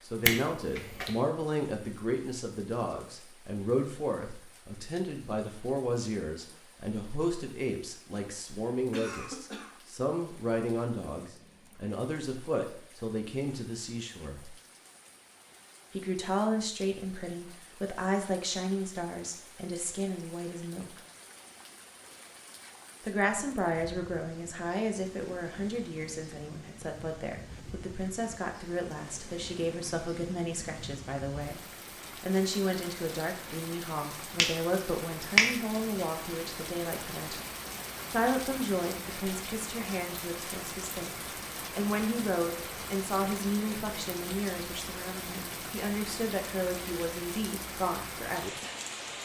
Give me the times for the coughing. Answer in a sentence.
The coughing can be heard from 8.9 to 9.8 s.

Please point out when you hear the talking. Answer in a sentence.
The talking can be heard from 0.0 to 14.6 s, from 15.9 to 21.0 s, from 23.0 to 37.5 s and from 38.1 to 48.5 s.